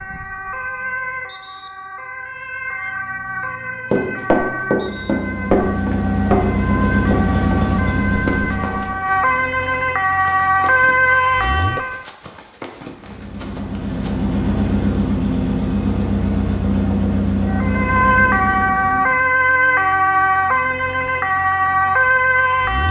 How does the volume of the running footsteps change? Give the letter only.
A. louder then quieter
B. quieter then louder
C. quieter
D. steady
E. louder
C.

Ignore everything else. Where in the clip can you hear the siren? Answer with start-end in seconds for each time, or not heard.
0.0-12.1, 17.4-22.8.